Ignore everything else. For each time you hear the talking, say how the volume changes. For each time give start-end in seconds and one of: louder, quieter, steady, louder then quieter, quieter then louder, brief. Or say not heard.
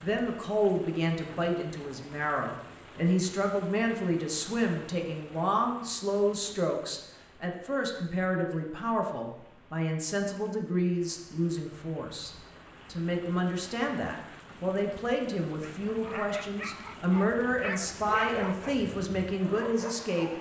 0.0-20.3 steady.